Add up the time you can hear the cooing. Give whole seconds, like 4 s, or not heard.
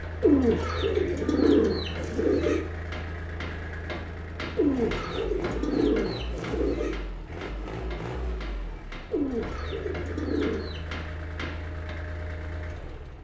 7 s.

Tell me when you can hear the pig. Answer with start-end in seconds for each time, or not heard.
not heard.